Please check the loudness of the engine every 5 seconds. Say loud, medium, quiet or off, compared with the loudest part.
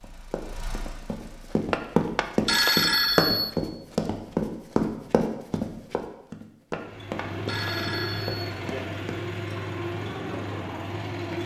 quiet, loud, loud.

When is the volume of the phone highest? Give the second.
3 s.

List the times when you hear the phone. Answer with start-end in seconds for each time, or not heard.
1.7-3.5, 6.7-8.5.